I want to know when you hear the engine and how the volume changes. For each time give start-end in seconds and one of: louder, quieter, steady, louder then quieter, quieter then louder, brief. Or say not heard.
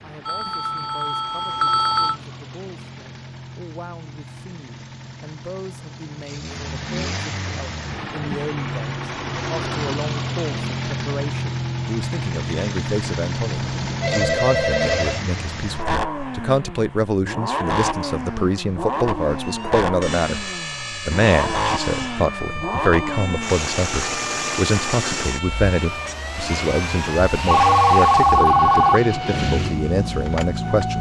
0.0-30.9 louder.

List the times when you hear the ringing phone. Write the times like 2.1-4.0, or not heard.
0.2-2.1, 13.6-15.2, 27.4-29.0.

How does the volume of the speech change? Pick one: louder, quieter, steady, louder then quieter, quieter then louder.
louder.